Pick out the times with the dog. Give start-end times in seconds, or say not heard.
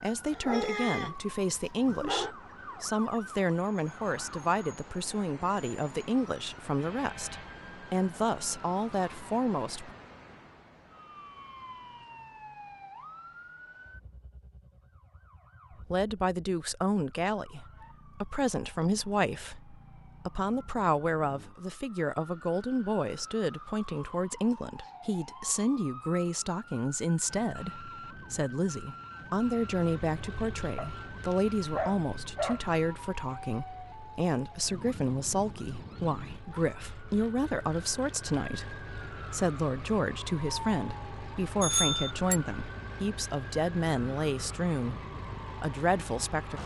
0.3-1.1, 1.9-2.4, 30.8-32.6.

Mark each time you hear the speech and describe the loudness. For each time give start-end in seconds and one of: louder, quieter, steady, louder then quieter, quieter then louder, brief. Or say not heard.
0.0-9.9 steady
15.9-45.0 steady
45.6-46.6 brief.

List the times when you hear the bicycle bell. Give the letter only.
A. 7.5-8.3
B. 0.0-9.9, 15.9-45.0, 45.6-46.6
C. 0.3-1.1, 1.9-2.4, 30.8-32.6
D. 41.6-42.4
D.